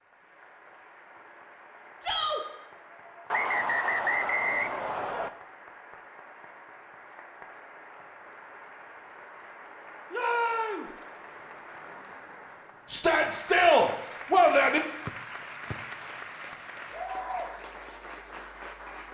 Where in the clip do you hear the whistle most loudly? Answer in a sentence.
The volume of the whistle peaks at 4 seconds.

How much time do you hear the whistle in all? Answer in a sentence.
You can hear the whistle for 3 seconds altogether.